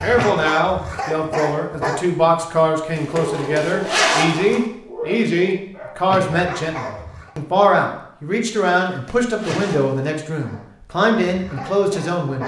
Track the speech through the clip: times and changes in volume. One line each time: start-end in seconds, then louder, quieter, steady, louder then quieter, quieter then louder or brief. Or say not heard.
0.0-12.4 steady.